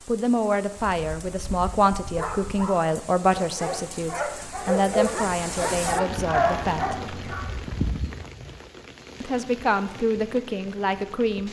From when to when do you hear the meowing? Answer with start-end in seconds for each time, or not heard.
6.1-7.5.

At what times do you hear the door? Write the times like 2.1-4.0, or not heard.
not heard.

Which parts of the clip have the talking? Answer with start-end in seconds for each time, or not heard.
0.1-7.0, 9.2-11.4.